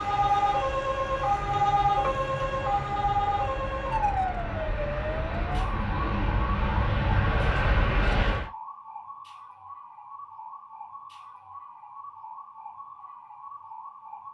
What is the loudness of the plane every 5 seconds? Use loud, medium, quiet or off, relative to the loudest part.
medium, loud, off.